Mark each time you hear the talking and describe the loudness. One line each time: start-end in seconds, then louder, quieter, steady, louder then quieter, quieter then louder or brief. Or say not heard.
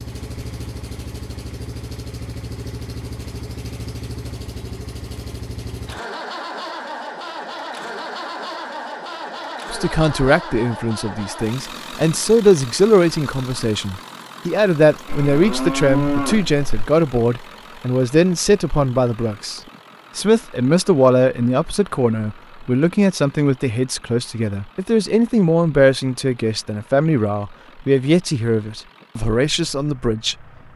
9.7-30.4 steady.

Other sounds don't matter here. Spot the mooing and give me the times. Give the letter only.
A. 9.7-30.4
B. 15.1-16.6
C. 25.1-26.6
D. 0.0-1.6
B.